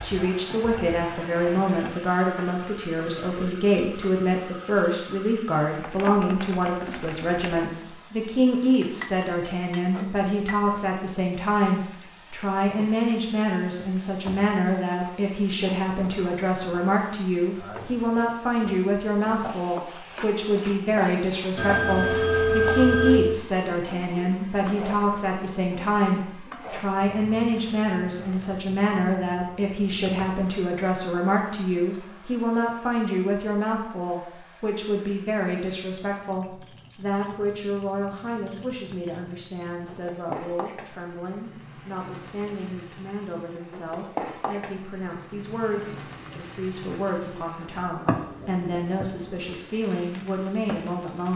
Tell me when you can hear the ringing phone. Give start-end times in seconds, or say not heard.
21.6-23.4.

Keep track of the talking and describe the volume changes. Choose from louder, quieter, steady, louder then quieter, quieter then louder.
quieter.